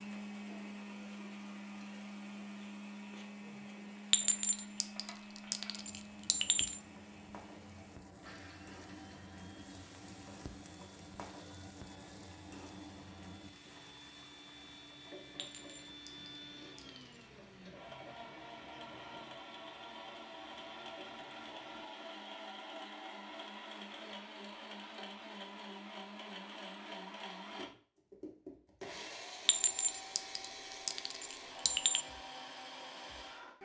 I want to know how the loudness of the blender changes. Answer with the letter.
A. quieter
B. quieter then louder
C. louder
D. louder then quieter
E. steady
B.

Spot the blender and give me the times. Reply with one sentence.
The blender can be heard from 0.0 to 33.6 s.